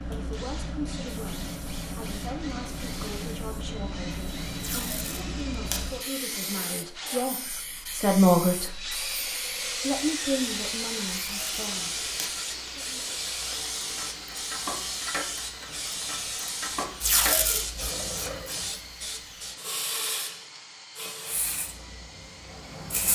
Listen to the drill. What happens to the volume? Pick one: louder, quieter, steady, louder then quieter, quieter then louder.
louder then quieter.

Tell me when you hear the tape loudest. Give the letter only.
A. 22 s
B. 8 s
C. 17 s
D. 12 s
C.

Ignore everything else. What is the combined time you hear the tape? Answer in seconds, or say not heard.
3 s.